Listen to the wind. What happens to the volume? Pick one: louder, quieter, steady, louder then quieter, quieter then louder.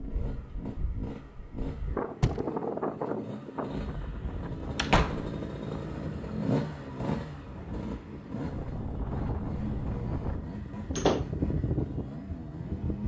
quieter then louder.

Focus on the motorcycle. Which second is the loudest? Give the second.
7 s.